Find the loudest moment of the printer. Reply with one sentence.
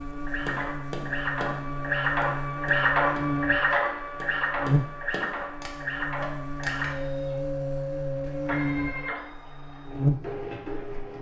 The volume of the printer peaks at 3 seconds.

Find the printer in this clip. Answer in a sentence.
You can hear the printer from 0.0 to 11.1 s.